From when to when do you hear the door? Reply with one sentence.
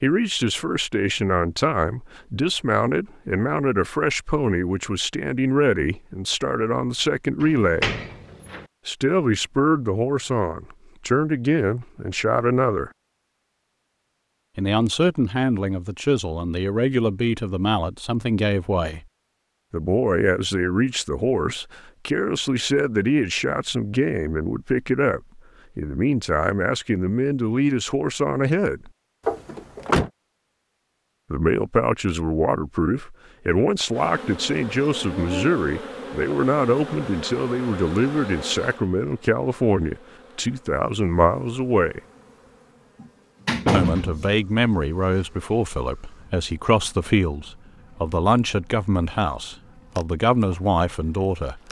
The door can be heard from 7.4 to 8.7 s, from 29.2 to 30.1 s and from 43.0 to 44.3 s.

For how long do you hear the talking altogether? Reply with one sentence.
You can hear the talking for 44 seconds altogether.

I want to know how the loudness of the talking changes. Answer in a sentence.
The volume of the talking stays about the same.